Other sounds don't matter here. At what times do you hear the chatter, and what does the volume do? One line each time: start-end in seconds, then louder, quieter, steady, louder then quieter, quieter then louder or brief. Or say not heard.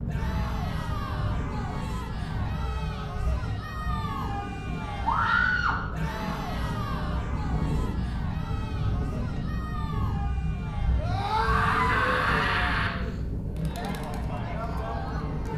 0.0-15.5 steady.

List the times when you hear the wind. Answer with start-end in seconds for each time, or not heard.
0.0-15.5.